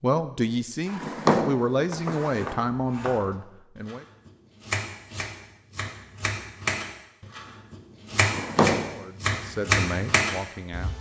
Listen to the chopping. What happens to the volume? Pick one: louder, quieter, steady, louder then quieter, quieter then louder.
louder.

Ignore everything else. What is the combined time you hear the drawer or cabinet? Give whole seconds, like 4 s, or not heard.
3 s.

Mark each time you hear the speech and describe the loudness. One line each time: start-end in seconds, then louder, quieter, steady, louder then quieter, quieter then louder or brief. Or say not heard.
0.0-4.0 steady
8.8-10.9 brief.